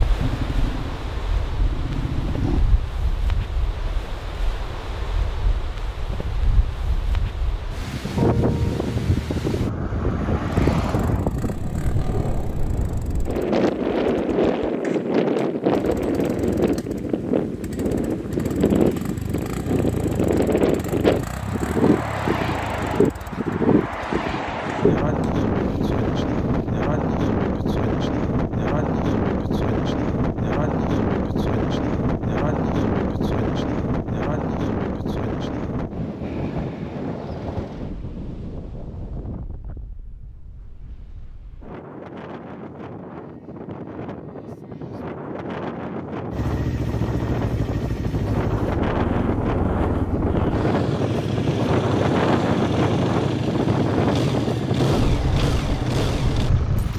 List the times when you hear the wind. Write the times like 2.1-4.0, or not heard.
0.0-56.9.